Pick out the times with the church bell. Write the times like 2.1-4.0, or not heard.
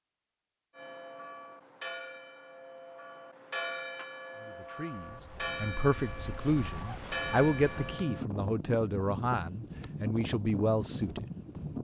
0.8-8.2.